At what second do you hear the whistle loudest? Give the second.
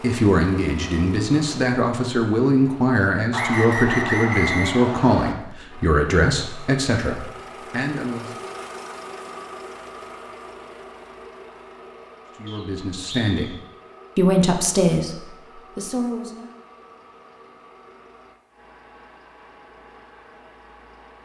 4 s.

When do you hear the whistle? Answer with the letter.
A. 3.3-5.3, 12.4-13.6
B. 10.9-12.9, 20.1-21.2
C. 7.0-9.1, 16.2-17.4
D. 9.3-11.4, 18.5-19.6
A.